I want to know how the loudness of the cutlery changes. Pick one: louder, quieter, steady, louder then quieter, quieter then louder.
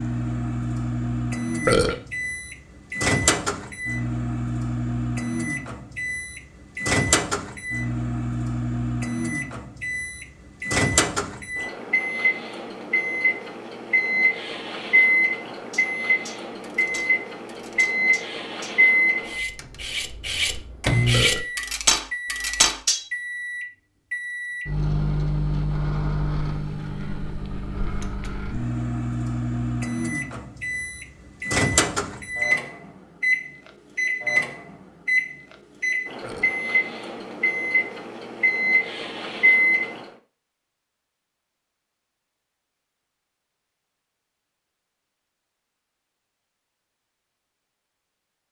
louder.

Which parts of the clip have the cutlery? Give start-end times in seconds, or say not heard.
15.7-23.1.